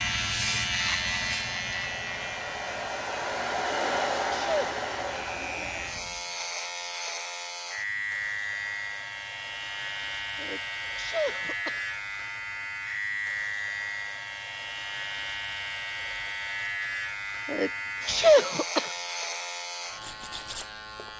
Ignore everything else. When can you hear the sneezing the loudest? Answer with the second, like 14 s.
18 s.